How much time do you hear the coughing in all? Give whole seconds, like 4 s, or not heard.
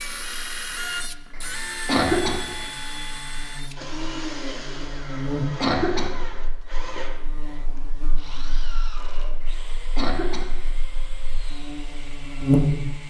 4 s.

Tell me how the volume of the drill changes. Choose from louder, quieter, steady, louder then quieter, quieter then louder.
quieter.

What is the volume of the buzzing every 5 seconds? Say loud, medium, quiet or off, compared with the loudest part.
quiet, medium, loud.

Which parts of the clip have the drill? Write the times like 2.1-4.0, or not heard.
0.0-13.0.